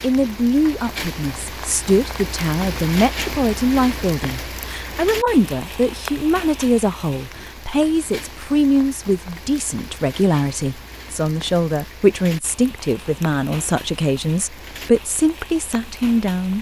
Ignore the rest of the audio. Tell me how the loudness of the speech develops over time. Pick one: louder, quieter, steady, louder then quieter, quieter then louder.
steady.